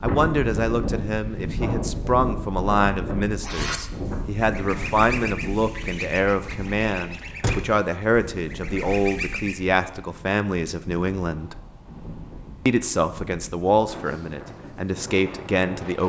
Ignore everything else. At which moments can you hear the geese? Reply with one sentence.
The geese can be heard from 3.4 to 9.6 s.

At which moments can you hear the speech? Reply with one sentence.
You can hear the speech from 0.0 to 11.6 s and from 12.7 to 16.0 s.